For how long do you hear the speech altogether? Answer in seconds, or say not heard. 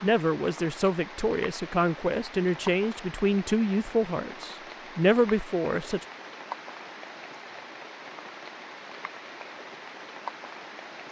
6 s.